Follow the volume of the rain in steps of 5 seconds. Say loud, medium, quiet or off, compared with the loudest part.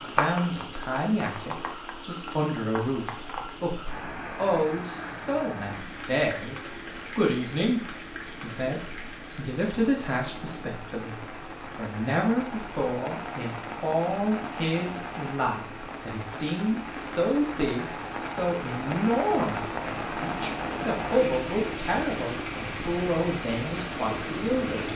loud, medium, loud, loud, loud.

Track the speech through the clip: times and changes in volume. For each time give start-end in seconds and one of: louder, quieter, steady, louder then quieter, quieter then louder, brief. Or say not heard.
0.0-24.9 steady.